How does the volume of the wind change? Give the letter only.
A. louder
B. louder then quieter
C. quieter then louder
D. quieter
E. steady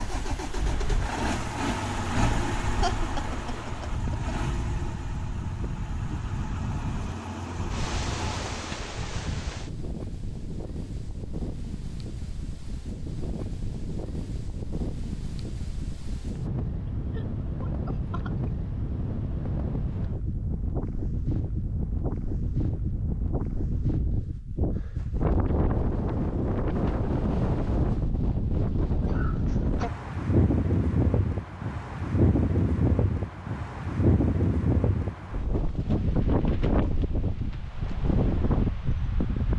A.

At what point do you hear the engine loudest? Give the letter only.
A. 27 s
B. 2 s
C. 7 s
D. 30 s
B.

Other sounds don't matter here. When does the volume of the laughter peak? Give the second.
3 s.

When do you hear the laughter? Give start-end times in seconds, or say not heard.
2.8-4.3, 17.1-18.5, 29.0-29.9.